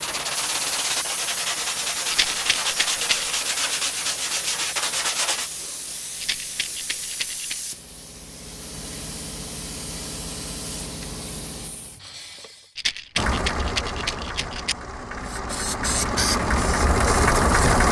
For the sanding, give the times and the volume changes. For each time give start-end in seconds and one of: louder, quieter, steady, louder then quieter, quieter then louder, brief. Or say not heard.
0.0-5.5 steady.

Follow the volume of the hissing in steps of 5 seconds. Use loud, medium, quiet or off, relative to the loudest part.
medium, medium, medium, loud.